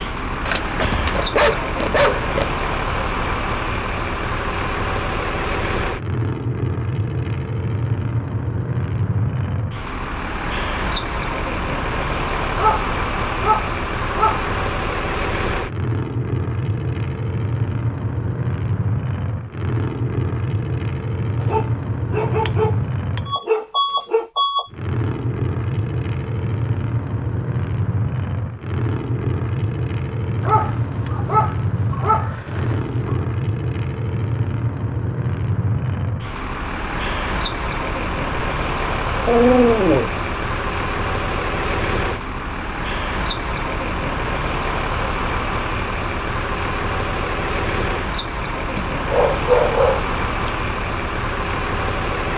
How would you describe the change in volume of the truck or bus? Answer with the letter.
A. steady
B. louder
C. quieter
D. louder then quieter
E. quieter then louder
A.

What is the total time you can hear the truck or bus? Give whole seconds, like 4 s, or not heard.
52 s.